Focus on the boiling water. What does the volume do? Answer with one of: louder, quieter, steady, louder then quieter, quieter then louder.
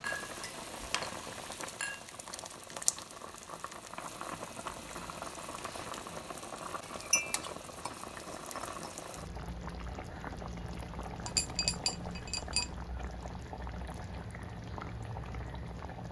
steady.